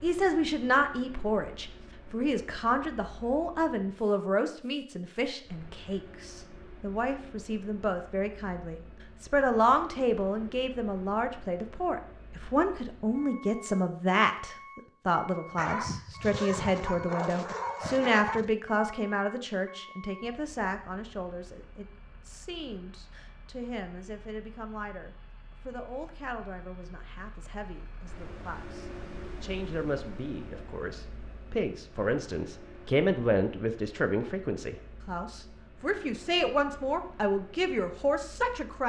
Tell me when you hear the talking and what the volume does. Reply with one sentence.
The talking can be heard from 0.0 to 38.8 s, getting quieter then louder.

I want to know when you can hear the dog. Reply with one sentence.
You can hear the dog from 15.6 to 18.5 s.